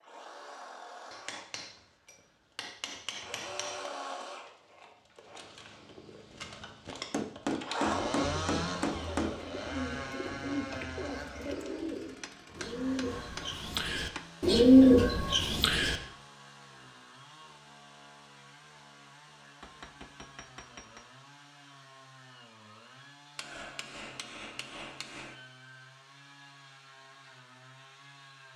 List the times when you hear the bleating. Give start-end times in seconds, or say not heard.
not heard.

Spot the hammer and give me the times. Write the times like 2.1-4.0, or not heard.
1.1-3.9, 7.1-9.3, 12.2-14.2, 19.6-21.1, 23.4-25.4.